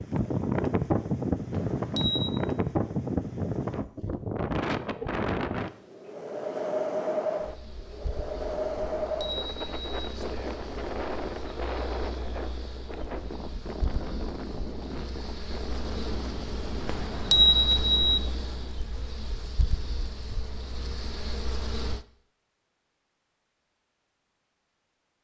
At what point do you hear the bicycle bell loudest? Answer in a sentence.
The volume of the bicycle bell peaks at 17 seconds.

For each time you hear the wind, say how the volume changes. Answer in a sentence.
The wind can be heard from 0.0 to 18.8 s, getting quieter.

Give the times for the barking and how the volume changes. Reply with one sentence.
You can't hear the barking here.